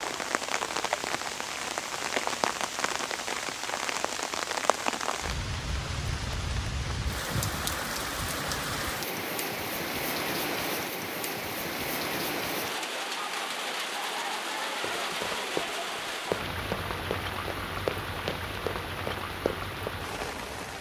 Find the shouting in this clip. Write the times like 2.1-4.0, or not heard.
not heard.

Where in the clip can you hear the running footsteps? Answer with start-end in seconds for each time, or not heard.
14.8-19.9.